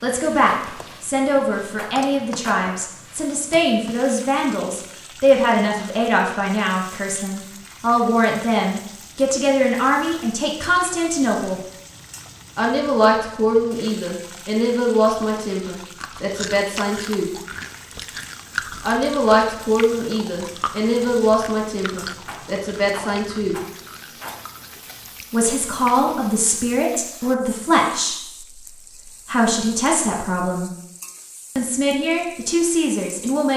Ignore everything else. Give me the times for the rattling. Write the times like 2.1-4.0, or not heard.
1.8-2.6, 22.2-24.4.